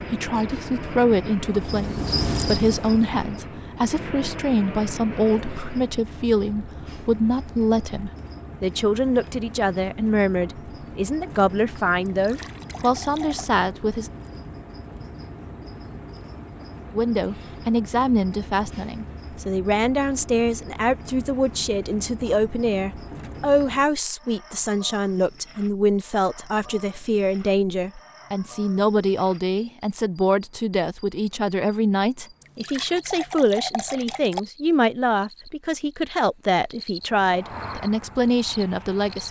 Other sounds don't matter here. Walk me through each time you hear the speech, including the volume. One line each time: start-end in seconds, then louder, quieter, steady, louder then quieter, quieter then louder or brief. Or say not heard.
0.1-14.1 steady
16.9-39.2 steady.